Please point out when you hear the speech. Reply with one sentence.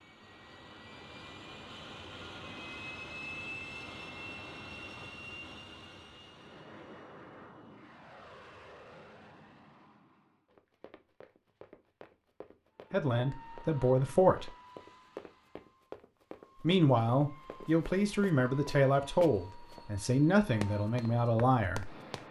The speech can be heard from 12.9 to 14.5 s and from 16.6 to 21.9 s.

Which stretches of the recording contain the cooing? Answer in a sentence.
The cooing can't be heard in this clip.